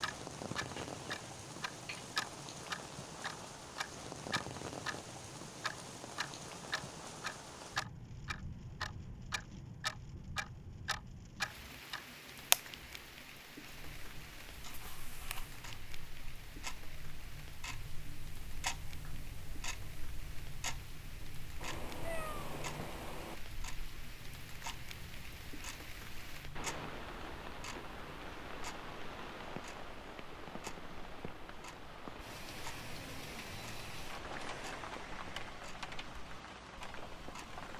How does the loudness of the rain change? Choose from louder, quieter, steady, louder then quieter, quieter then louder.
quieter then louder.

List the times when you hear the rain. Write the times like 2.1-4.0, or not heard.
0.0-37.7.